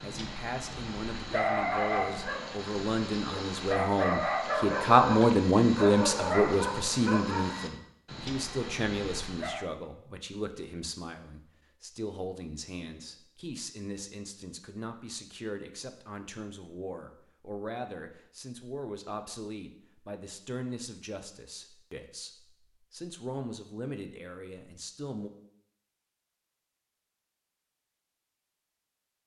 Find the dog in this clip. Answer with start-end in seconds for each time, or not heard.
0.0-9.7.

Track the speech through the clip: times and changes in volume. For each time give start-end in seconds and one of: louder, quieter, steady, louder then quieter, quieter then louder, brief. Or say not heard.
0.0-25.3 quieter.